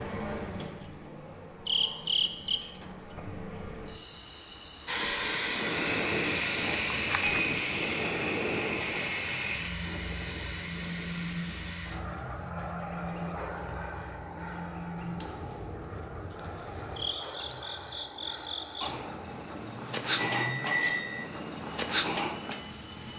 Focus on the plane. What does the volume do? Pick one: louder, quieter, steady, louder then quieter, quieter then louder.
quieter.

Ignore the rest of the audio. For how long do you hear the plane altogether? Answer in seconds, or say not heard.
18 s.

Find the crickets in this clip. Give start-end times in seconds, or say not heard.
0.0-23.1.